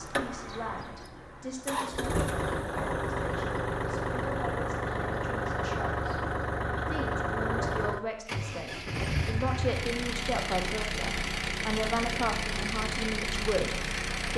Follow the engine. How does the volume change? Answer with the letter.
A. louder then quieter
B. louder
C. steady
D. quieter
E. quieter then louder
C.